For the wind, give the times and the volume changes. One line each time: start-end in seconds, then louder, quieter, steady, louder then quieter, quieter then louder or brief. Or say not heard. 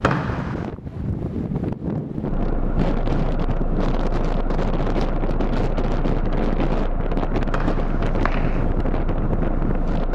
0.0-10.1 steady.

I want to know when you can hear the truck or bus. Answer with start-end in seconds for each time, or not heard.
2.2-10.1.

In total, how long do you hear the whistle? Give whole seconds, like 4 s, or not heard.
2 s.